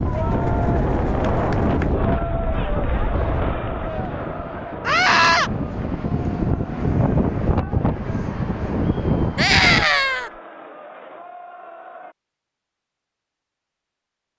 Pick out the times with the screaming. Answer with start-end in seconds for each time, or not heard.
4.8-5.5, 9.3-10.3.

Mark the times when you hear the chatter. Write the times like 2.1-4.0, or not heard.
0.0-12.2.